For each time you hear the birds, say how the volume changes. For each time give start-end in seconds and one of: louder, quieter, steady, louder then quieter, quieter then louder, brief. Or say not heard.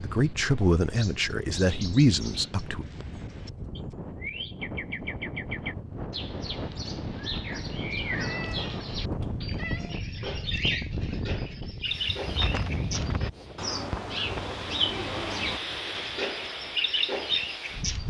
0.0-18.0 louder.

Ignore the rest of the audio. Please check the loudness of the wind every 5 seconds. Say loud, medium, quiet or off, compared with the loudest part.
medium, loud, loud, loud.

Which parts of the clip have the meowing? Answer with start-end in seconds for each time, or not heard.
8.0-9.9.